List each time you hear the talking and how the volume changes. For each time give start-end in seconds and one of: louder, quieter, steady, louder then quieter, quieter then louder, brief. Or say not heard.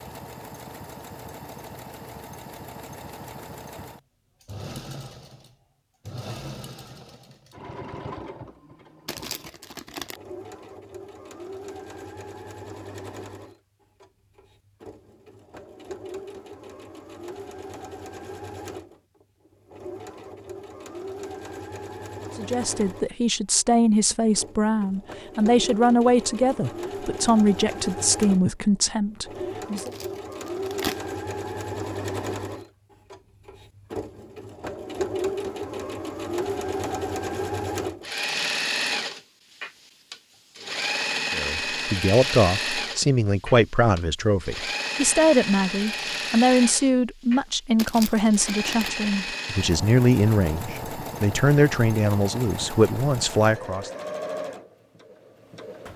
22.4-29.9 steady
41.3-53.9 steady.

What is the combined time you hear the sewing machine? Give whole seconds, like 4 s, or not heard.
56 s.